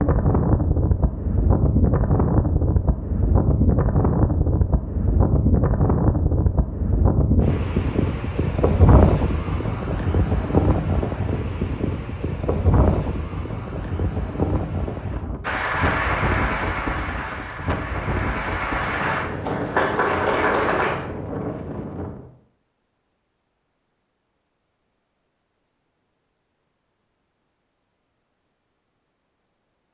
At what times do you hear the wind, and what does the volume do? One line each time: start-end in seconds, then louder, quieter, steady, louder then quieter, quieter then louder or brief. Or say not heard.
0.0-22.3 quieter.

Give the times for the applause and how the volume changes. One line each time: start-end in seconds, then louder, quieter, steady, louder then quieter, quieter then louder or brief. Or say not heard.
15.4-20.9 quieter then louder.